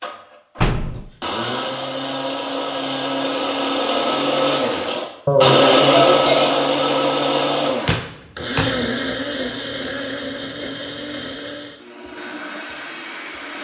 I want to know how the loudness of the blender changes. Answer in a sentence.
The volume of the blender goes up, then down.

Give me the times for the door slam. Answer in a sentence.
The door slam can be heard from 0.6 to 1.1 s and from 7.8 to 8.8 s.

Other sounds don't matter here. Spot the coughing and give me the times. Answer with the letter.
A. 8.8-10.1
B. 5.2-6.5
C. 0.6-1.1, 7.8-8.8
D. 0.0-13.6
B.